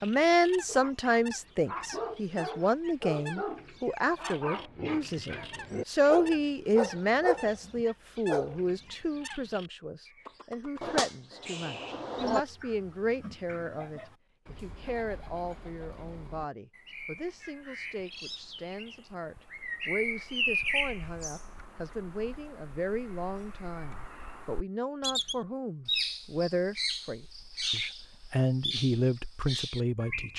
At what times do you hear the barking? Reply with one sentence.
The barking can be heard from 0.7 to 8.7 s.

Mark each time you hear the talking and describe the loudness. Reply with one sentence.
The talking can be heard from 0.0 to 30.3 s, getting quieter then louder.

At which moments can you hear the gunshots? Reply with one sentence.
The gunshots can be heard from 10.8 to 12.4 s.